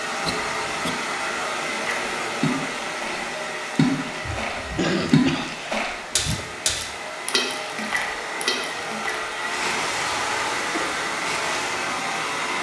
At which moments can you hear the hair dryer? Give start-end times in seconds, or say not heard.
0.0-12.5.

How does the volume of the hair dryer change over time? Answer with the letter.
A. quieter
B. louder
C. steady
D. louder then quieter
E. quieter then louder
E.